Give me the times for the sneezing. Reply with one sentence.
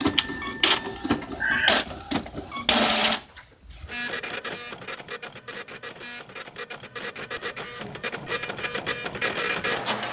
You can hear the sneezing from 1.4 to 1.9 s.